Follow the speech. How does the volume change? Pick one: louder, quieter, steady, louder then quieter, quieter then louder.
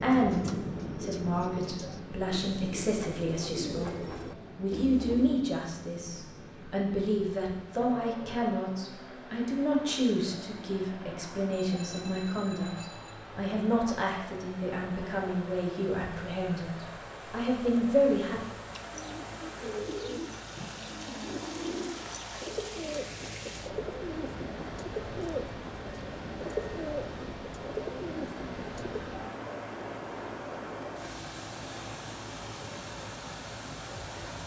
steady.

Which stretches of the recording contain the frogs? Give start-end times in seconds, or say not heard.
not heard.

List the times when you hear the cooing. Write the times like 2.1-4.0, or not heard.
0.0-5.5, 18.8-29.0.